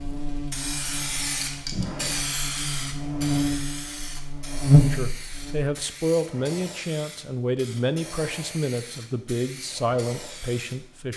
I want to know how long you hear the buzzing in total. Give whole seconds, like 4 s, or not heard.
6 s.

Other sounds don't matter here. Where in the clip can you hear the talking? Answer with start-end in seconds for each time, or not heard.
4.8-11.1.